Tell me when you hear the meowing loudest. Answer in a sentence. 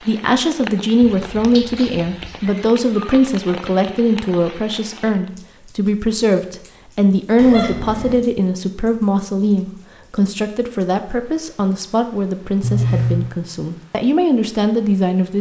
The volume of the meowing peaks at 13 seconds.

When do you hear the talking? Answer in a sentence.
You can hear the talking from 0.1 to 15.3 s.